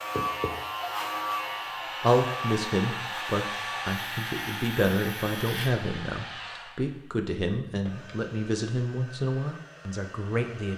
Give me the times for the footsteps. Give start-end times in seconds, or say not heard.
not heard.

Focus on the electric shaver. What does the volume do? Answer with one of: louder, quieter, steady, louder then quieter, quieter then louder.
quieter.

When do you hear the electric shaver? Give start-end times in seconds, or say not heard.
0.0-5.8.